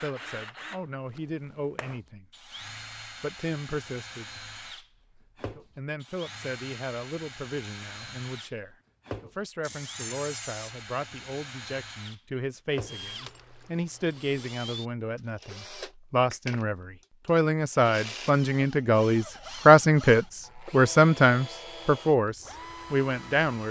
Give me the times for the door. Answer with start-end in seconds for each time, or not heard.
9.6-10.8.